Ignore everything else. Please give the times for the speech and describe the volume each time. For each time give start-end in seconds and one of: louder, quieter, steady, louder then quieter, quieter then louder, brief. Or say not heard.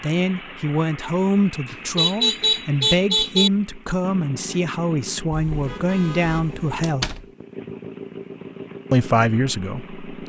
0.0-7.2 steady
8.9-9.9 brief.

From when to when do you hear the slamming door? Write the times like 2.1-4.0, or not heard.
6.8-7.3.